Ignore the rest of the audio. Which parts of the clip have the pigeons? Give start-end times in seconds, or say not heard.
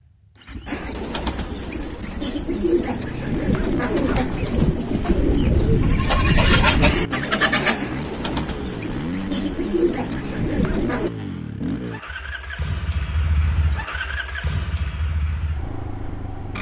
0.7-11.1.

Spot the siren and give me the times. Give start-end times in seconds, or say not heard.
not heard.